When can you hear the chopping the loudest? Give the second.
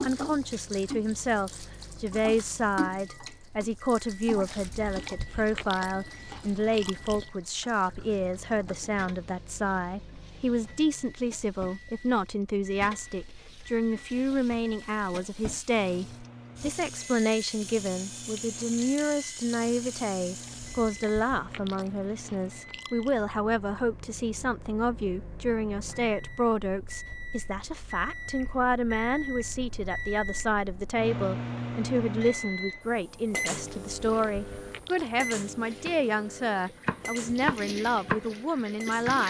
38 s.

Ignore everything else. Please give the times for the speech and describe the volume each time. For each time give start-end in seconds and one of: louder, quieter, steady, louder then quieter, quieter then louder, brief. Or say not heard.
0.0-39.2 steady.